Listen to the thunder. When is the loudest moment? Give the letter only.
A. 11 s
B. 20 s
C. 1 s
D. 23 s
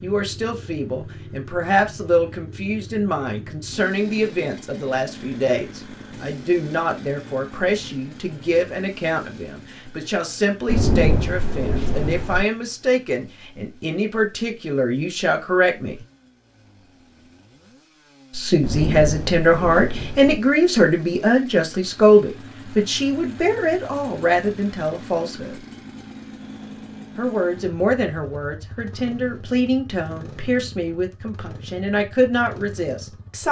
A.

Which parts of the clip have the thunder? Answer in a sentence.
You can hear the thunder from 10.7 to 12.4 s and from 18.6 to 20.4 s.